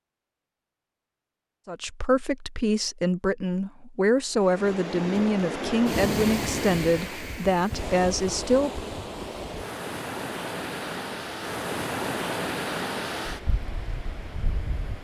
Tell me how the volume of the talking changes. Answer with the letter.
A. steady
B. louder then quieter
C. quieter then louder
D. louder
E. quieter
A.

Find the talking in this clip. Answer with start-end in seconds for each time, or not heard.
1.6-8.8.